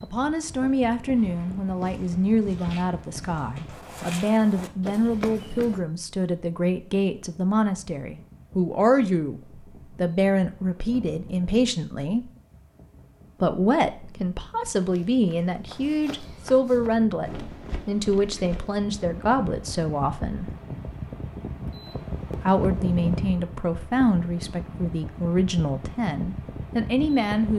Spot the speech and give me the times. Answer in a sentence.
The speech can be heard from 0.0 to 12.3 s, from 13.4 to 20.5 s and from 22.3 to 27.5 s.